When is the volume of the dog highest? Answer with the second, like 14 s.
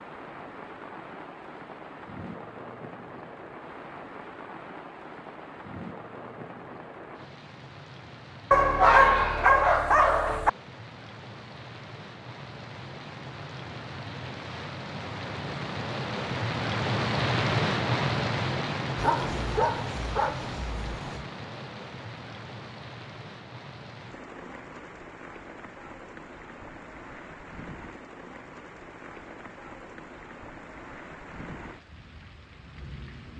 9 s.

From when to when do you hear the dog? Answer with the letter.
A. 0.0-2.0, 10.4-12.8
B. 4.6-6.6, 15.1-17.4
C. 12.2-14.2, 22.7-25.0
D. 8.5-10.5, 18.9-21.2
D.